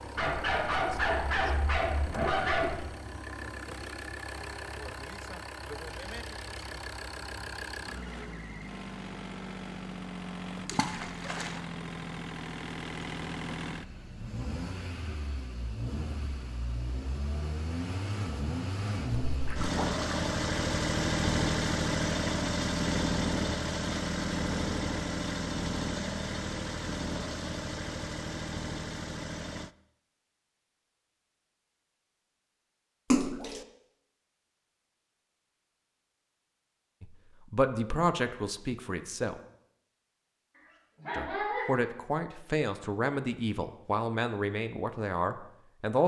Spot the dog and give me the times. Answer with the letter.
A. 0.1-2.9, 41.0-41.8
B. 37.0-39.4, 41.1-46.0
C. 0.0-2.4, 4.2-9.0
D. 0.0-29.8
A.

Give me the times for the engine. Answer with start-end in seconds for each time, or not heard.
0.0-29.8.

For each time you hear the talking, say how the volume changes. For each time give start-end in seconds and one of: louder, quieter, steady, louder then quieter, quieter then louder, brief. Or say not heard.
37.0-39.4 brief
41.1-46.0 steady.